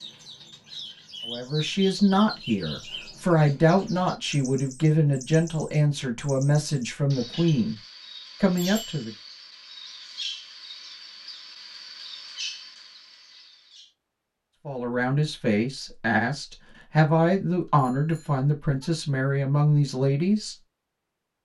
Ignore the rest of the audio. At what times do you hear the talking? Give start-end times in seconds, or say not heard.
1.2-7.8, 8.4-9.1, 14.7-20.6.